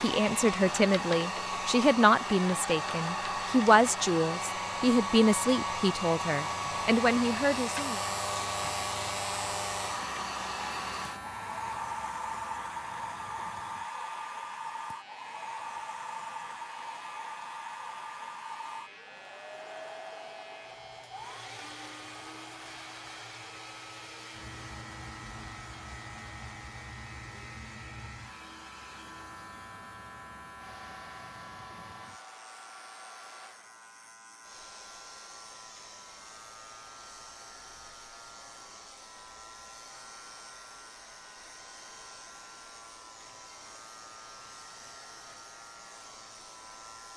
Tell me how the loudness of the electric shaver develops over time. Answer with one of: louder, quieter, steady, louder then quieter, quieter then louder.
quieter.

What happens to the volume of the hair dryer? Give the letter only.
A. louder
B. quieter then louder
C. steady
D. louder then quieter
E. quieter
E.